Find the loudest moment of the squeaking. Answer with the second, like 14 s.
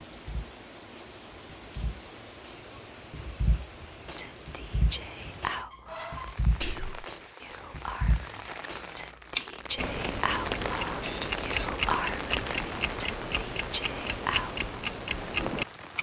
11 s.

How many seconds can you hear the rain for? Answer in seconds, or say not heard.
16 s.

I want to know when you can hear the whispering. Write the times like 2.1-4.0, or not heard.
4.2-14.7.